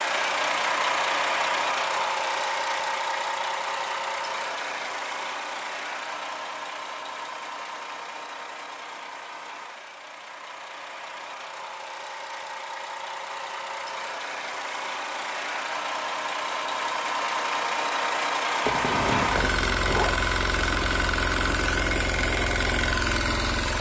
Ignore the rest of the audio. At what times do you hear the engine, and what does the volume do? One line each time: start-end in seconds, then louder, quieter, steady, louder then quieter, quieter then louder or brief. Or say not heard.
0.0-23.7 quieter then louder.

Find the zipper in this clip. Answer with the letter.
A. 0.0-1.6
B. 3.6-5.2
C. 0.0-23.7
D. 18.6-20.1
D.